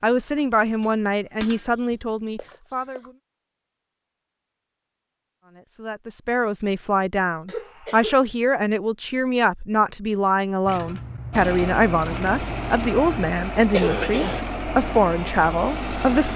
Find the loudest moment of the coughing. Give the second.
14 s.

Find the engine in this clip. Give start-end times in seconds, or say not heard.
11.3-16.3.